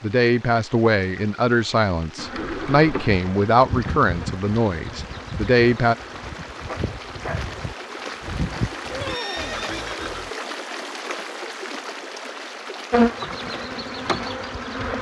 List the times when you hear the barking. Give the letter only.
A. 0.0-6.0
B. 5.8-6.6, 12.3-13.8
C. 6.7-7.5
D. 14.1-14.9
C.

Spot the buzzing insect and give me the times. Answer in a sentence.
You can hear the buzzing insect from 2.1 to 9.2 s and from 12.9 to 14.9 s.